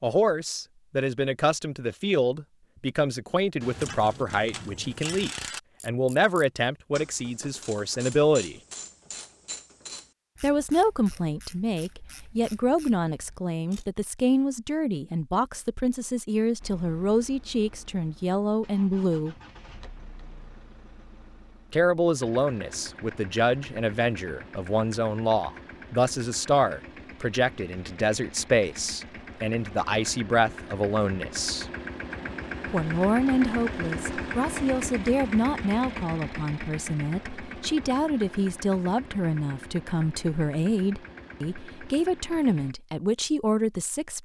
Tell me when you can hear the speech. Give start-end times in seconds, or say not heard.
0.0-8.6, 10.4-19.4, 21.7-31.6, 32.7-44.1.